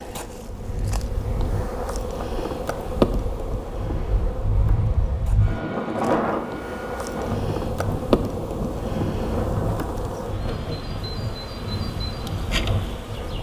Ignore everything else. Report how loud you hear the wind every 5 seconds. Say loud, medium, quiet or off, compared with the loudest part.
medium, loud, medium.